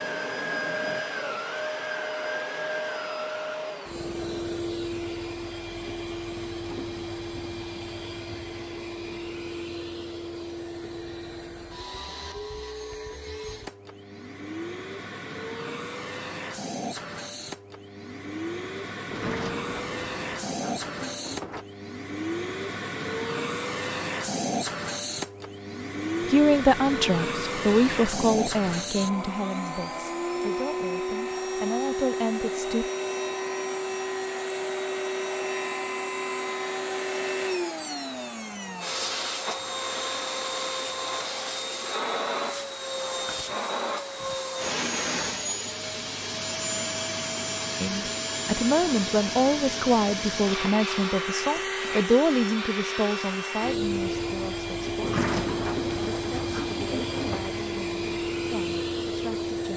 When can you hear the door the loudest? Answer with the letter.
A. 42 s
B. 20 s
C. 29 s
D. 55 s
D.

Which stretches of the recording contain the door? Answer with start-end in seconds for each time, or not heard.
19.1-21.6, 55.0-57.5.